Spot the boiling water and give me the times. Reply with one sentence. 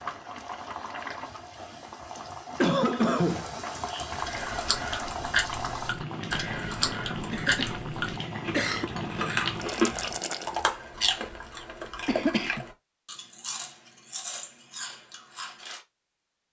You can hear the boiling water from 0.0 to 10.7 s.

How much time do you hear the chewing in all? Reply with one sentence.
You can hear the chewing for 12 seconds altogether.